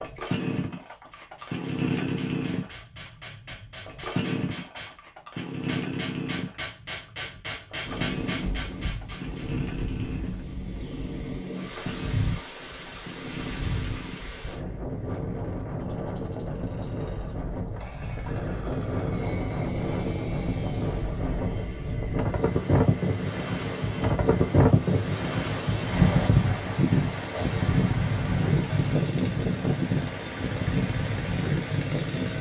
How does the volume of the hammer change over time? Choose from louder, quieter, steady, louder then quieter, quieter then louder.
louder.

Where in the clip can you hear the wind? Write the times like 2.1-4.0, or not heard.
7.8-32.3.